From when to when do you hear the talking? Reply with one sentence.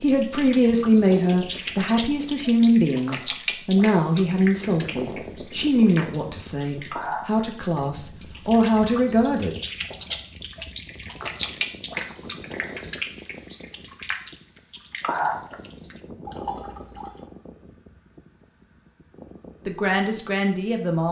You can hear the talking from 0.0 to 9.6 s and from 19.6 to 21.0 s.